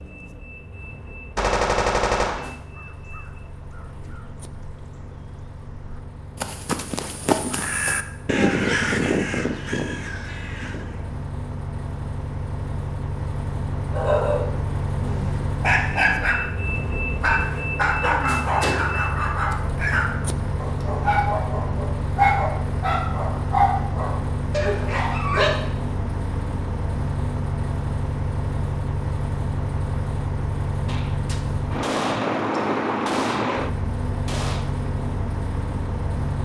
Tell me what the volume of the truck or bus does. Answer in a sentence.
The loudness of the truck or bus goes up.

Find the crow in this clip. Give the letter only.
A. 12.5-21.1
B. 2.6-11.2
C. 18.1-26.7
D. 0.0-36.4
B.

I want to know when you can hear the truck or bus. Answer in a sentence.
You can hear the truck or bus from 0.0 to 36.4 s.